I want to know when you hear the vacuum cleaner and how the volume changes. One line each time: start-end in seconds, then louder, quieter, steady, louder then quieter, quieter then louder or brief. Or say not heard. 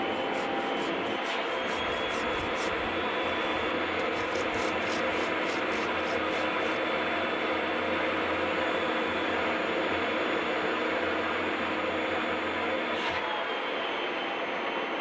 0.0-14.9 steady.